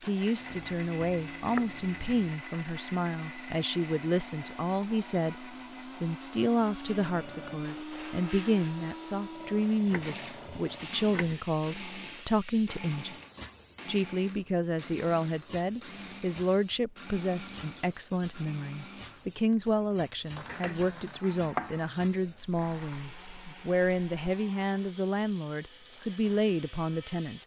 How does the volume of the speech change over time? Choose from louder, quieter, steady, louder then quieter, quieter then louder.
steady.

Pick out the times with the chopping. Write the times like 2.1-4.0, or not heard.
0.4-2.3, 9.9-11.4, 20.4-21.7.